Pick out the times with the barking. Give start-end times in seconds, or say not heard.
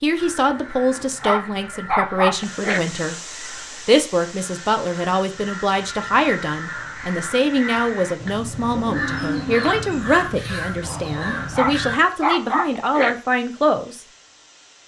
0.9-2.8, 11.3-13.2.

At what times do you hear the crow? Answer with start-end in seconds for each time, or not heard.
0.1-12.0.